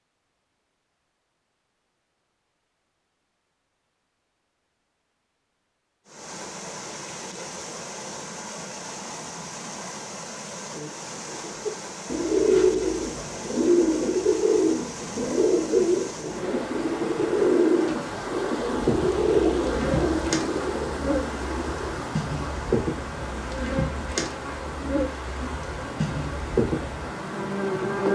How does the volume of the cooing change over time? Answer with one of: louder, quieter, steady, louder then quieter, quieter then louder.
quieter.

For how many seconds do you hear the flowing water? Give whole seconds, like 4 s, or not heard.
22 s.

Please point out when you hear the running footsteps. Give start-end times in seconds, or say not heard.
not heard.